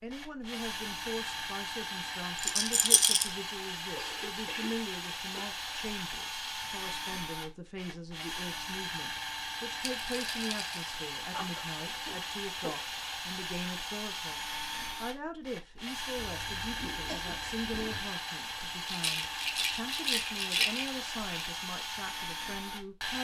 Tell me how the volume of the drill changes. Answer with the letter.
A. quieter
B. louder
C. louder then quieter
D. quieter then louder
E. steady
E.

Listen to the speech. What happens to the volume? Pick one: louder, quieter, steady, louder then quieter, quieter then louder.
steady.